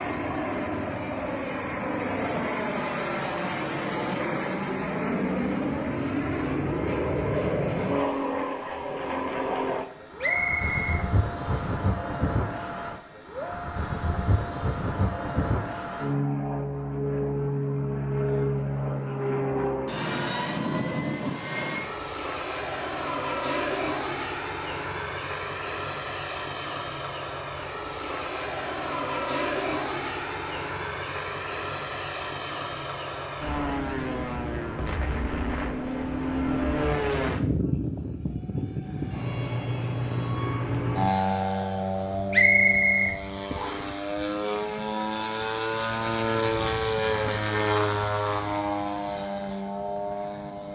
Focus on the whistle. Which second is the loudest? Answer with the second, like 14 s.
43 s.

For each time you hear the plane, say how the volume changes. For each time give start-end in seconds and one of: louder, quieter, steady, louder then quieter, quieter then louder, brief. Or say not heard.
0.0-50.7 steady.